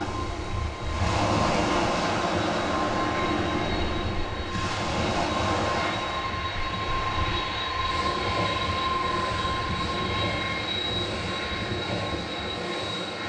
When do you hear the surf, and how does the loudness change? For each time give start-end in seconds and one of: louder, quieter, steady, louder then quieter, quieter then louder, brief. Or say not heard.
0.0-13.2 quieter.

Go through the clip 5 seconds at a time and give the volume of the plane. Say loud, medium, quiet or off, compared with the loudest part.
medium, loud, loud.